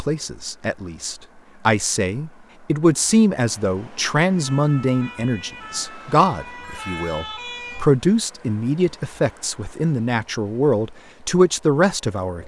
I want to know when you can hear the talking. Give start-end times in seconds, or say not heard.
0.0-12.4.